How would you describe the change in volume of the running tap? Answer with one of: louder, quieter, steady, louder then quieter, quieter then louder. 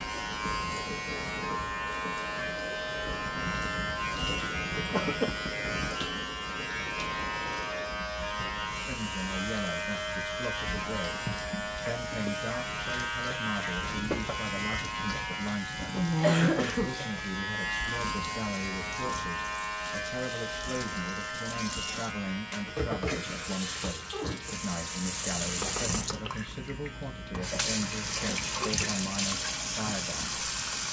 louder.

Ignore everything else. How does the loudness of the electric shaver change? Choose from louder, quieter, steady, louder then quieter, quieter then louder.
quieter.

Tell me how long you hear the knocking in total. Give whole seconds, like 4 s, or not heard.
2 s.